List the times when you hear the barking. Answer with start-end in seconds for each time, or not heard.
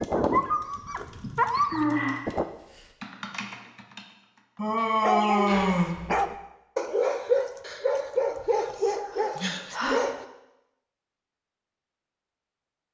0.0-2.5, 5.0-10.2.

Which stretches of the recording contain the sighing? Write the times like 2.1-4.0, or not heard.
1.2-2.2, 4.5-5.9, 9.1-10.1.